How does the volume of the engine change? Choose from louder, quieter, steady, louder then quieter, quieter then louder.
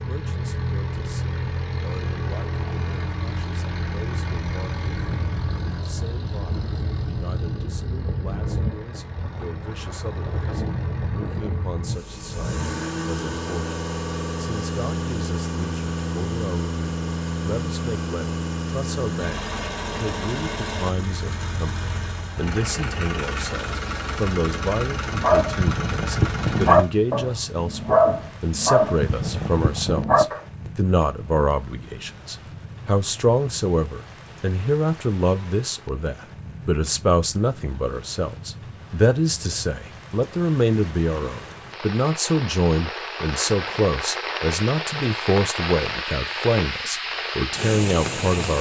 steady.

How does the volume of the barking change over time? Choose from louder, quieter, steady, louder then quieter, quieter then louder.
louder then quieter.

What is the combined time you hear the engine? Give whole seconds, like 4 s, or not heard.
27 s.